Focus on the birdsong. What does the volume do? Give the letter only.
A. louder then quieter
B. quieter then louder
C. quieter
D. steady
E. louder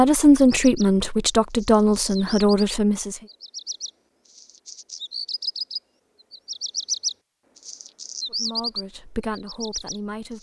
E.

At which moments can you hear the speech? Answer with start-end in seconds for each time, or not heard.
0.0-3.2, 8.3-10.3.